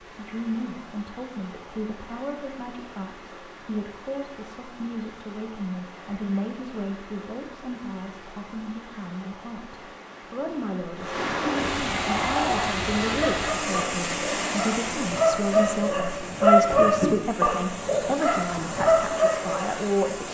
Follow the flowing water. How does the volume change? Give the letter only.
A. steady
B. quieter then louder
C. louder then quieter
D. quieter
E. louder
C.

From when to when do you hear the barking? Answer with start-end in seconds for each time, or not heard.
11.9-19.7.